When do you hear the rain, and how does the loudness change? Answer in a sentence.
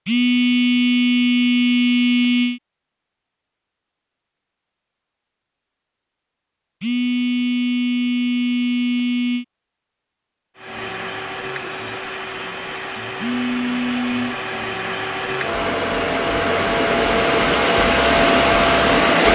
The rain can't be heard in this clip.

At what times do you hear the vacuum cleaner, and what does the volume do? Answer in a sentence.
You can hear the vacuum cleaner from 10.6 to 19.3 s, getting louder.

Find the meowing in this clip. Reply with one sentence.
The meowing can't be heard in this clip.